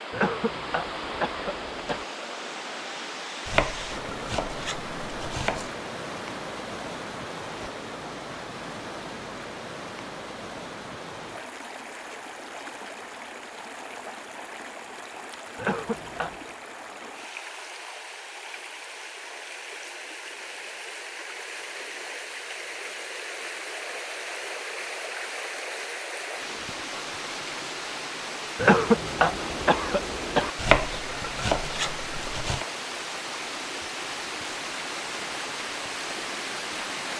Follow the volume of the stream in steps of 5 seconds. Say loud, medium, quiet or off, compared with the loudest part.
loud, loud, medium, medium, loud, loud, loud, loud.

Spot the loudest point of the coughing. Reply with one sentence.
The volume of the coughing peaks at 29 seconds.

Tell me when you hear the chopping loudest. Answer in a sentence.
The loudest moment of the chopping is at 31 seconds.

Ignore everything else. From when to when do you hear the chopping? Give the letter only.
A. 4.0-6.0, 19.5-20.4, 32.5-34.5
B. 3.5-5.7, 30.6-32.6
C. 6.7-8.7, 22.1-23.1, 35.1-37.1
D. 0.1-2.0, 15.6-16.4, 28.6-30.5
B.